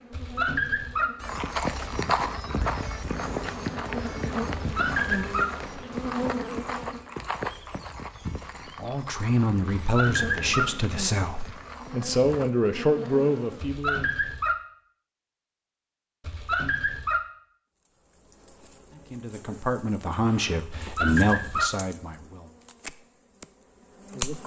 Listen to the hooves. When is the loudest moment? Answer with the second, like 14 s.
2 s.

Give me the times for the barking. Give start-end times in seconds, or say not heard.
0.1-1.1, 4.5-5.5, 9.7-10.7, 13.6-14.6, 16.2-17.2, 20.7-21.7.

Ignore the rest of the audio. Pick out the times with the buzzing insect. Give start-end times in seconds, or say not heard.
0.0-7.2, 10.0-13.8, 17.9-24.4.